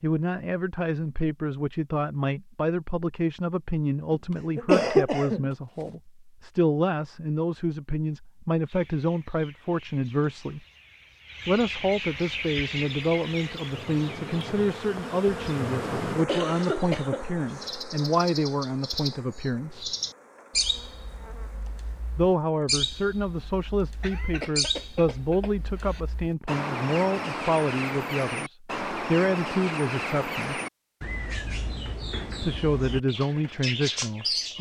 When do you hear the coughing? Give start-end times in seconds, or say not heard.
4.1-6.0, 16.2-17.7, 24.0-26.0.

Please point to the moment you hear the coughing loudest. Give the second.
5 s.